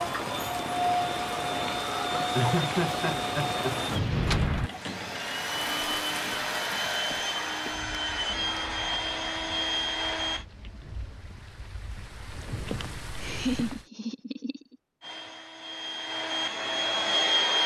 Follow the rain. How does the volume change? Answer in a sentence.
The loudness of the rain goes down, then up.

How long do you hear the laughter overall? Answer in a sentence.
You can hear the laughter for 3 seconds altogether.